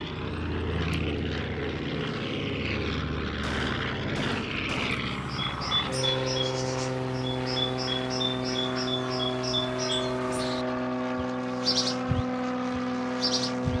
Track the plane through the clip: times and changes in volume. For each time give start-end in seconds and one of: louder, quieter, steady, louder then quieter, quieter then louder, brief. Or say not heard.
0.0-13.7 steady.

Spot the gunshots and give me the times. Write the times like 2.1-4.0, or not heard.
3.4-5.0.